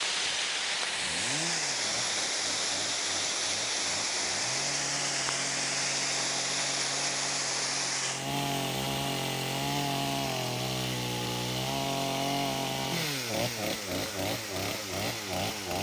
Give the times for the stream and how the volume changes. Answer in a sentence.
The stream can be heard from 0.0 to 15.7 s, getting quieter.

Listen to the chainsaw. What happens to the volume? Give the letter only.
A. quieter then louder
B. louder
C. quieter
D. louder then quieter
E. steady
B.